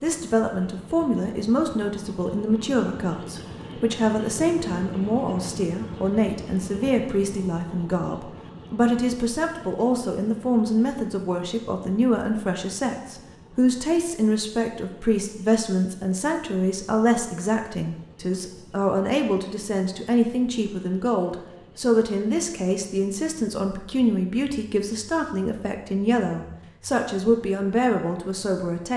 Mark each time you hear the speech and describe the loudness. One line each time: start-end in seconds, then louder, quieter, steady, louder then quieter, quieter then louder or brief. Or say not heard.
0.0-28.9 steady.